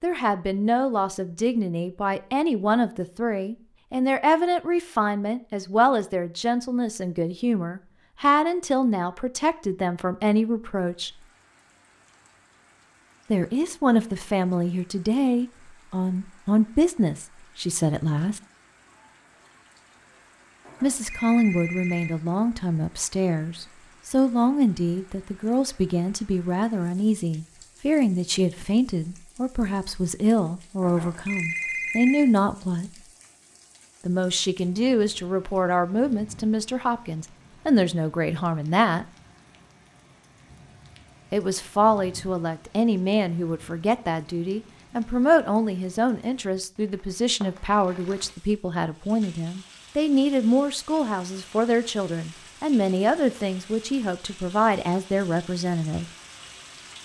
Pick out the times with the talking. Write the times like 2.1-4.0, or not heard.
0.0-11.1, 13.3-18.4, 20.8-32.9, 34.0-39.0, 41.3-56.0.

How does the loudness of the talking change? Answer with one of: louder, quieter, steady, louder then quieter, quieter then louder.
steady.